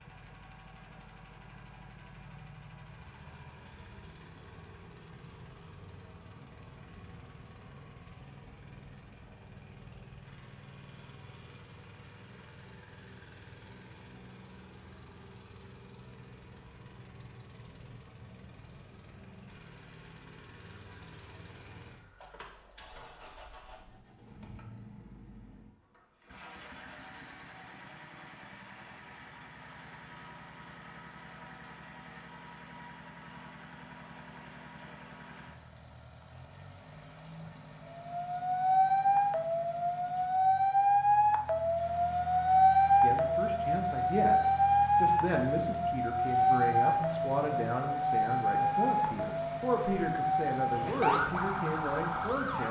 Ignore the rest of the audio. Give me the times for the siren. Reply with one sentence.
You can hear the siren from 37.9 to 52.6 s.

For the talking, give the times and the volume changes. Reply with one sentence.
You can hear the talking from 43.0 to 52.6 s, at a steady volume.